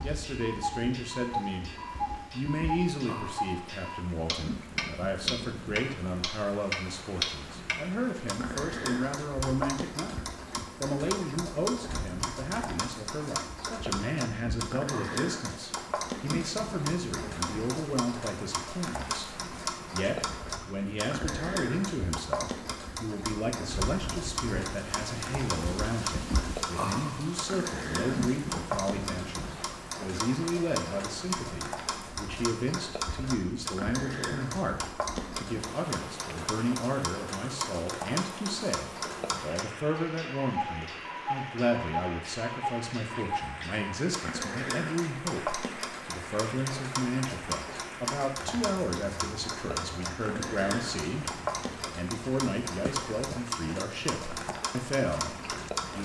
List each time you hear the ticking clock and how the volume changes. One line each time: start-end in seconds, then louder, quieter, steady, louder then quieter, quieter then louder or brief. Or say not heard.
0.0-56.0 steady.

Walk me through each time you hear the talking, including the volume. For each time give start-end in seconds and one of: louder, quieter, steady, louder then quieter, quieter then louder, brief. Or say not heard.
0.0-1.7 brief
2.3-56.0 steady.